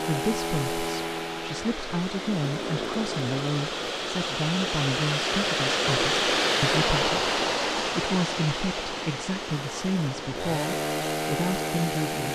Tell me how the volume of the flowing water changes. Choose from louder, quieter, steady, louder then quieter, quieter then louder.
louder then quieter.